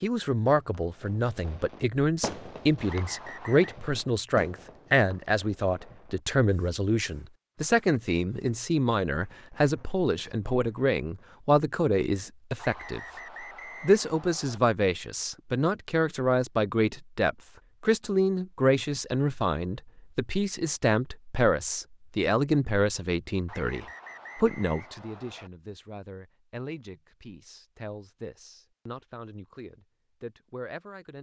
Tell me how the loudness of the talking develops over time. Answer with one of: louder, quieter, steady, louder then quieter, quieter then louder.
quieter.